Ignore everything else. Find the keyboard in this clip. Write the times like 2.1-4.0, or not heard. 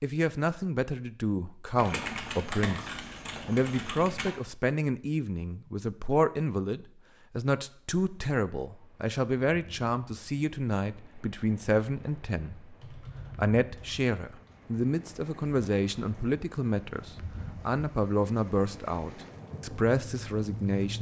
1.8-4.3, 12.6-14.6.